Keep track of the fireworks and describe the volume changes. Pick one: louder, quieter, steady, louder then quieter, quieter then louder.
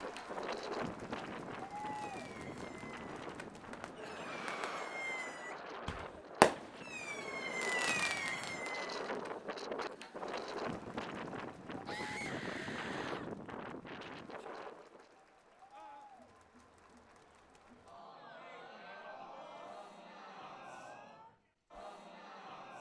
louder then quieter.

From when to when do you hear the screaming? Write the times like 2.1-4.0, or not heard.
4.2-5.0, 11.8-13.3, 15.7-16.1.